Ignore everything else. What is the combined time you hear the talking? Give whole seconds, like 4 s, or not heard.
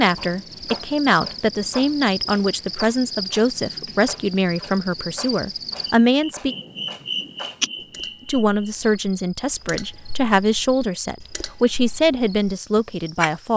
12 s.